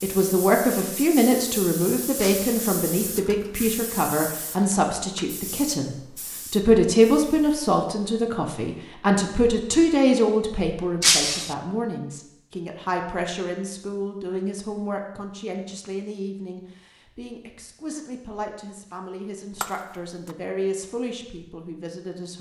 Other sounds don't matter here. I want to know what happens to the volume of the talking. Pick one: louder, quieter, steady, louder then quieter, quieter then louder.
quieter.